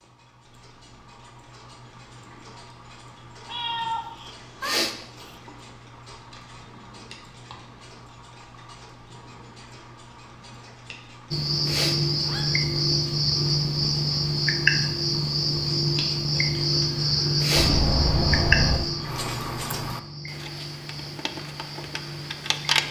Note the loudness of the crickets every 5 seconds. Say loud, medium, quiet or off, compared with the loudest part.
off, off, loud, loud, quiet.